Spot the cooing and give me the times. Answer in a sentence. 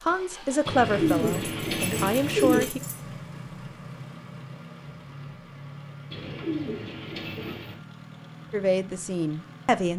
The cooing can be heard from 0.7 to 2.6 s and from 6.1 to 7.8 s.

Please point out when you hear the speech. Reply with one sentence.
The speech can be heard from 0.1 to 2.8 s and from 8.5 to 9.9 s.